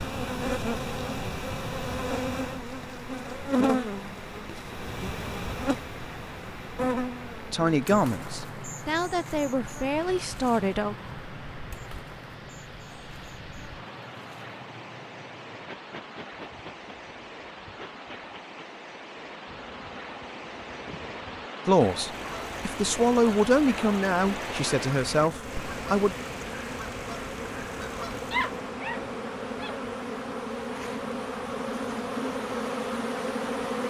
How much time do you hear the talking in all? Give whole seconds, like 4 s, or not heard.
8 s.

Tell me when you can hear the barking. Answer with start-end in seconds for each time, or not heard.
28.3-29.8.